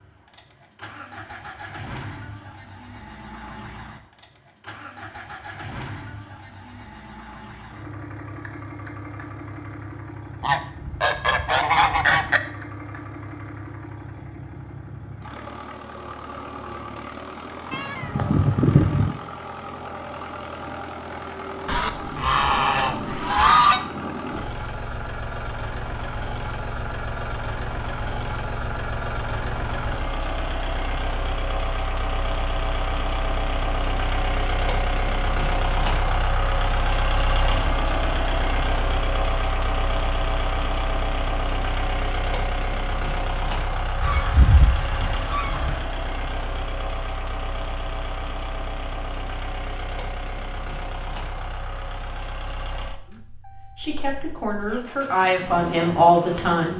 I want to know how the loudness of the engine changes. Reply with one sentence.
The volume of the engine goes up, then down.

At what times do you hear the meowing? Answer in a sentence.
You can hear the meowing from 17.7 to 19.1 s.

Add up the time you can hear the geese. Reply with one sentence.
The geese can be heard for 6 seconds in total.